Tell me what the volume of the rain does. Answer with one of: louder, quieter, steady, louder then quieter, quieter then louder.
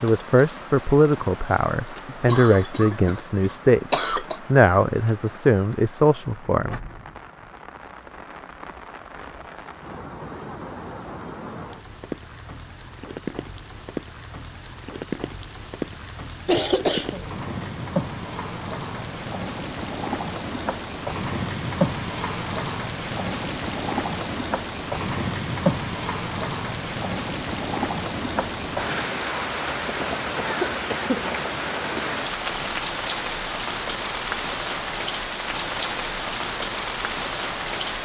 louder.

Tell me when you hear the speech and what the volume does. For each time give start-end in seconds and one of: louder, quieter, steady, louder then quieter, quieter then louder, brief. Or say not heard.
0.0-6.8 steady.